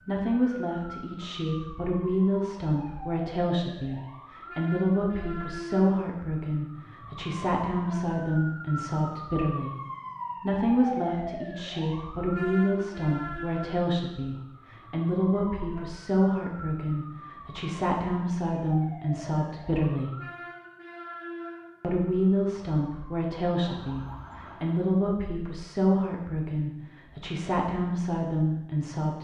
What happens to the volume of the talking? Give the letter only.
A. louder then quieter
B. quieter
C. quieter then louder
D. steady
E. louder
D.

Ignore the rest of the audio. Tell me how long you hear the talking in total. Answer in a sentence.
The talking can be heard for 27 seconds in total.